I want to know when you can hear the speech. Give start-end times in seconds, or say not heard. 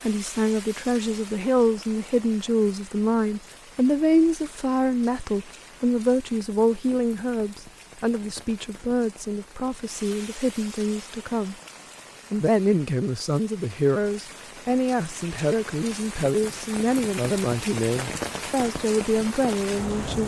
0.0-11.6, 12.3-20.2.